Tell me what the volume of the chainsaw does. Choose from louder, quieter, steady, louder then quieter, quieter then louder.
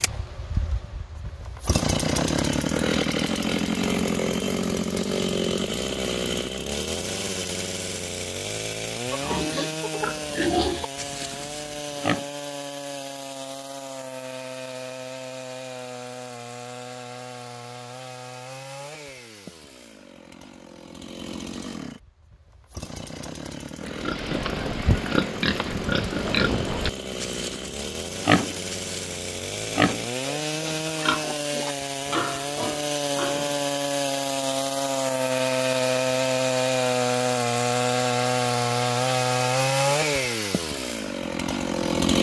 quieter then louder.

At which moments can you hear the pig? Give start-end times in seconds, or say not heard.
9.1-12.2, 23.9-33.6.